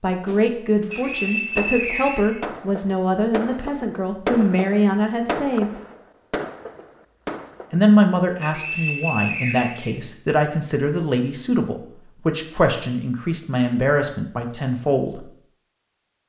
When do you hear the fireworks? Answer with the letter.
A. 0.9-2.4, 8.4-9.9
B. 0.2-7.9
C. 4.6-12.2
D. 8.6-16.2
B.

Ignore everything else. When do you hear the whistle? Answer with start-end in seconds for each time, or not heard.
0.9-2.4, 8.4-9.9.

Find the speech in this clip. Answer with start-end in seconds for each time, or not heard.
0.0-5.7, 7.7-15.2.